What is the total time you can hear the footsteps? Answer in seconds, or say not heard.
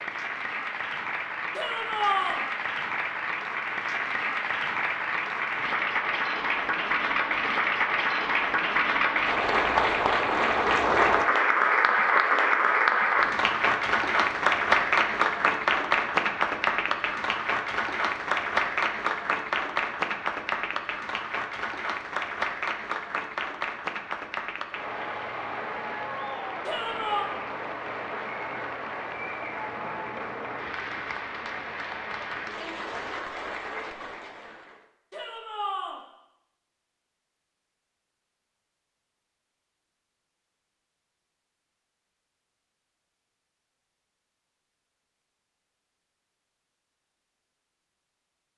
not heard.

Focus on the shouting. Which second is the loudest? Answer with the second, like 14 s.
2 s.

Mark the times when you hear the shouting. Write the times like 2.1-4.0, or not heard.
1.6-2.5, 26.6-27.3, 35.1-36.0.